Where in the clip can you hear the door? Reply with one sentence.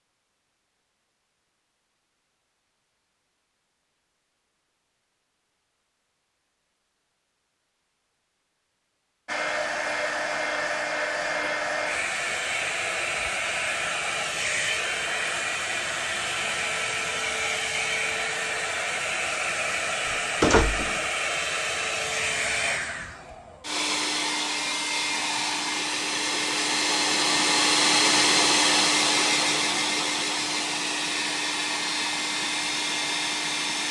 The door can be heard from 19.9 to 21.0 s.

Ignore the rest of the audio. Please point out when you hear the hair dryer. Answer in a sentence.
You can hear the hair dryer from 9.2 to 33.8 s.